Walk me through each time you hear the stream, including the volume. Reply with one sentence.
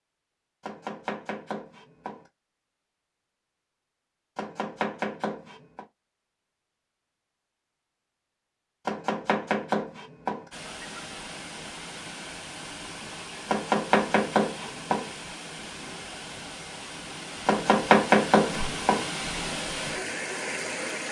You can hear the stream from 10.5 to 21.0 s, getting louder.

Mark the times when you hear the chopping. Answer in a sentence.
You can hear the chopping from 0.6 to 2.2 s, from 4.3 to 5.8 s, from 8.8 to 10.4 s, from 13.4 to 15.1 s and from 17.4 to 19.1 s.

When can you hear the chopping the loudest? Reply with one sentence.
The loudest moment of the chopping is at 18 seconds.